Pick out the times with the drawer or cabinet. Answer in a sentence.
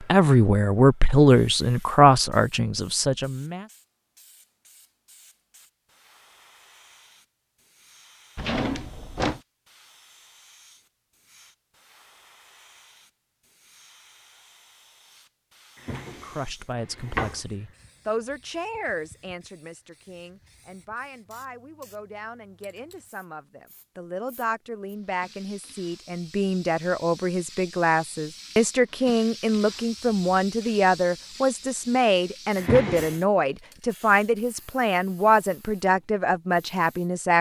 The drawer or cabinet can be heard from 8.3 to 9.4 s, from 15.8 to 17.4 s and from 32.5 to 33.2 s.